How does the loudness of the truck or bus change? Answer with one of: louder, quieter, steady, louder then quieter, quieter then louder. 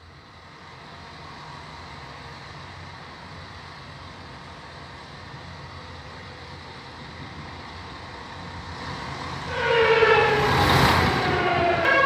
louder.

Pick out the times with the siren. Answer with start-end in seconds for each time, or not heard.
9.4-12.0.